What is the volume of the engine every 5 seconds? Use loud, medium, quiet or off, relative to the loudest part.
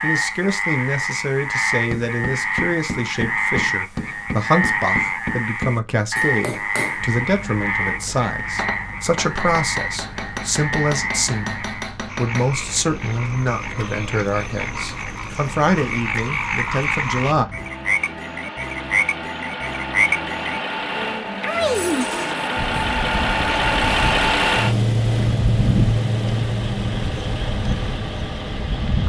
off, quiet, quiet, quiet, loud, loud.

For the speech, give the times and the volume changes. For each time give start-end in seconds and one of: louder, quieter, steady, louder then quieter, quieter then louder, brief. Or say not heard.
0.0-17.4 steady.